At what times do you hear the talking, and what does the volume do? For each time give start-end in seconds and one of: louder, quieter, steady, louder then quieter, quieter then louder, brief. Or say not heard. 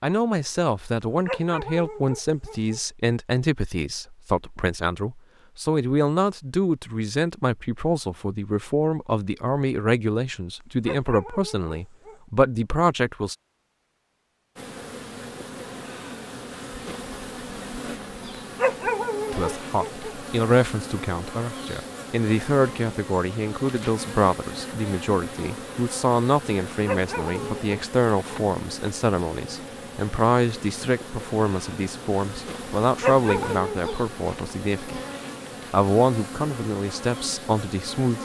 0.0-13.3 steady
19.3-35.0 steady
35.7-38.1 brief.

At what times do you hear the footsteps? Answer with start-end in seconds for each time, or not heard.
not heard.